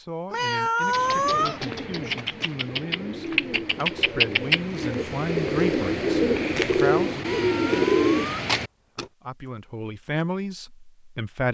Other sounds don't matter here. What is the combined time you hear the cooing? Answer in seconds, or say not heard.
8 s.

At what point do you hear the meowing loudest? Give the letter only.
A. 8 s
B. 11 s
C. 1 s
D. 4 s
C.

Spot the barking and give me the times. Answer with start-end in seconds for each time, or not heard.
not heard.